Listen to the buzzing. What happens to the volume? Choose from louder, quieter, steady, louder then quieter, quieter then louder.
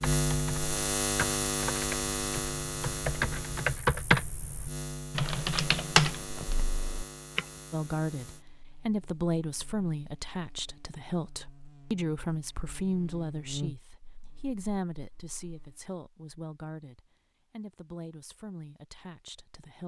quieter then louder.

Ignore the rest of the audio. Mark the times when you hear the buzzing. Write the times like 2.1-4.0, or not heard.
0.0-15.8.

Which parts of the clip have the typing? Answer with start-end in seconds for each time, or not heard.
0.0-7.4.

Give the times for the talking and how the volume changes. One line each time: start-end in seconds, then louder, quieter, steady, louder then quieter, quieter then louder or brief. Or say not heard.
7.7-19.8 quieter.